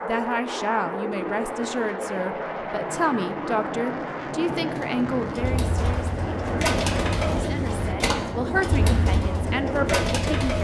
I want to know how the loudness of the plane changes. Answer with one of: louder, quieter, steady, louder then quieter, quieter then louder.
steady.